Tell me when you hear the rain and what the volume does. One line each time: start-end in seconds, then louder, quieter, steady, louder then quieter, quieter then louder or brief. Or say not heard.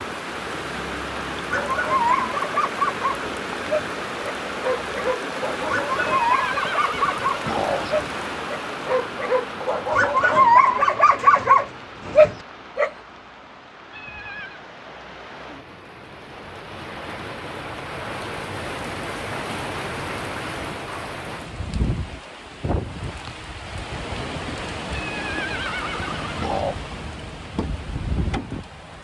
0.0-28.9 quieter then louder.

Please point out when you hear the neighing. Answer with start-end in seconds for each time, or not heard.
6.1-8.0, 13.9-14.6, 24.9-26.8.